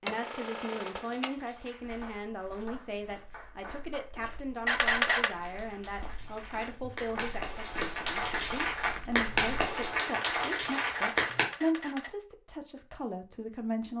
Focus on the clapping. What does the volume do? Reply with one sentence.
The loudness of the clapping goes up.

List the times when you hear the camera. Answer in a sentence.
You can hear the camera from 0.1 to 1.3 s, from 4.7 to 5.3 s and from 10.1 to 12.1 s.